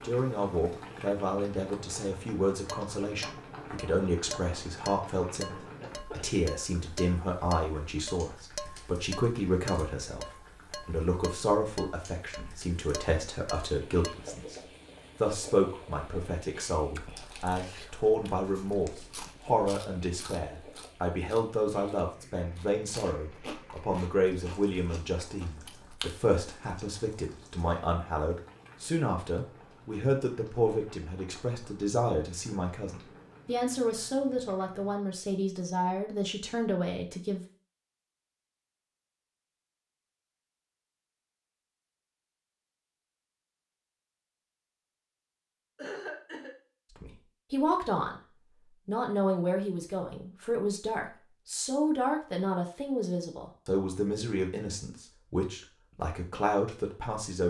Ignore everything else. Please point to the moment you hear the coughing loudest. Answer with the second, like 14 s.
46 s.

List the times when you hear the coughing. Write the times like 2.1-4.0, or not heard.
5.8-6.4, 45.8-46.5.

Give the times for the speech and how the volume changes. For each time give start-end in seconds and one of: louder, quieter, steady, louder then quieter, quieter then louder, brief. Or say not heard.
0.0-37.5 steady
47.0-48.2 brief
48.9-57.4 steady.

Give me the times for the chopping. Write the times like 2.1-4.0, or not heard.
not heard.